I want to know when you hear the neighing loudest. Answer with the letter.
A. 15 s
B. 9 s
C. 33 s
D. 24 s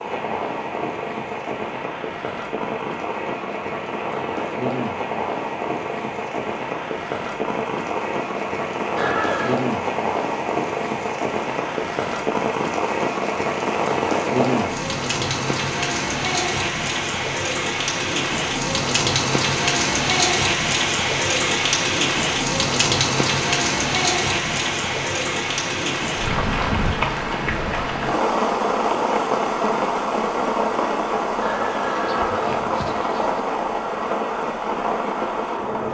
B.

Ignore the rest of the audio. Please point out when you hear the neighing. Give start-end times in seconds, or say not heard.
8.9-9.6, 31.4-33.4.